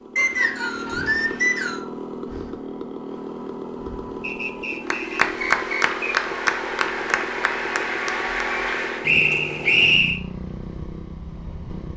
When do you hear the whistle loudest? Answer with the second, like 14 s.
10 s.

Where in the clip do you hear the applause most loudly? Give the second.
6 s.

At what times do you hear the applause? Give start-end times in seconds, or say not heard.
4.8-9.1.